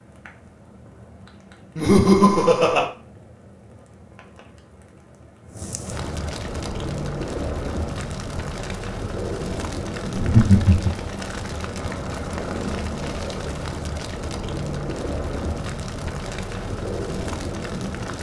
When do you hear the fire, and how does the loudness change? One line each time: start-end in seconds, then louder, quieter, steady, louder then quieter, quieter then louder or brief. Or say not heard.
0.0-18.1 louder.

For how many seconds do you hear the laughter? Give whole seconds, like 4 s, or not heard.
2 s.